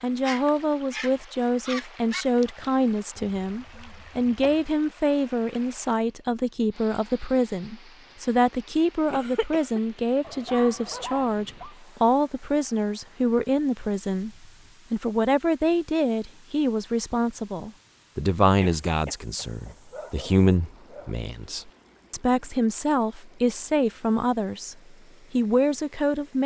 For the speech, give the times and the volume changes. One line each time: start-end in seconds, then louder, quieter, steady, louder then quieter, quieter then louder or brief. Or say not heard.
0.0-26.4 steady.